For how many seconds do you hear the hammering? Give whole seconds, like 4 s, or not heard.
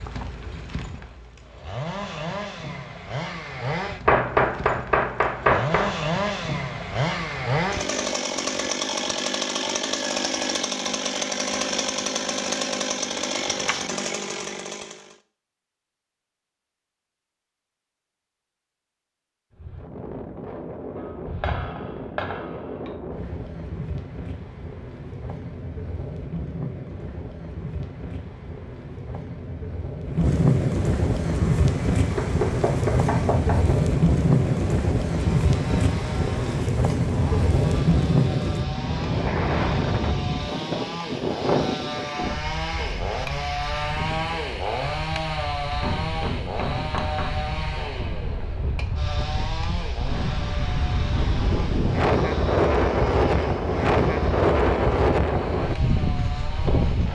7 s.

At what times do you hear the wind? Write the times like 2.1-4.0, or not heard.
19.5-57.0.